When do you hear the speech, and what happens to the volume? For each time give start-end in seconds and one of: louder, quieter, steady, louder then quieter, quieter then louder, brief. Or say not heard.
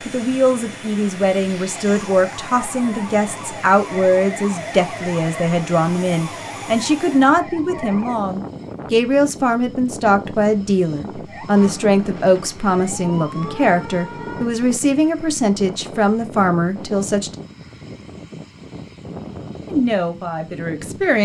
0.1-17.4 steady
19.7-21.1 brief.